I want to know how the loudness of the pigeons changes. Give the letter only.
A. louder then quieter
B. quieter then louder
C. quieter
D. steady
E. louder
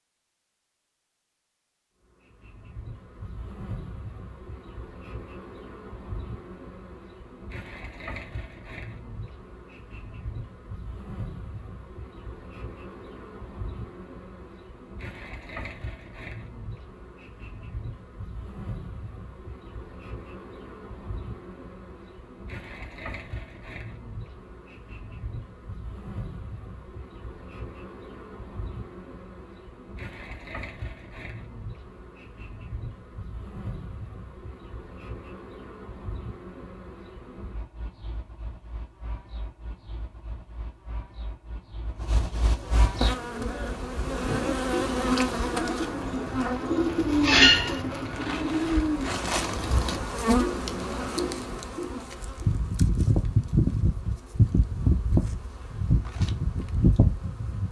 A.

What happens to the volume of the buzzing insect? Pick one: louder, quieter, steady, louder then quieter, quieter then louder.
louder.